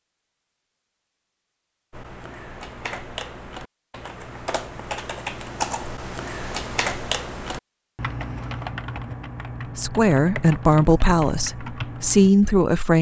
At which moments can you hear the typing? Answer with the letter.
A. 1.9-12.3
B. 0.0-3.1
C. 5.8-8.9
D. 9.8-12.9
A.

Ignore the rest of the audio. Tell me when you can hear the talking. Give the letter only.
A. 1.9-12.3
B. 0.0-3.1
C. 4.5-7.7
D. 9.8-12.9
D.